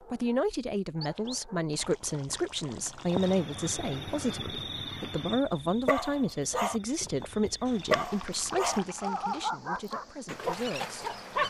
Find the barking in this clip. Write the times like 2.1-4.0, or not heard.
0.0-1.6, 5.5-11.4.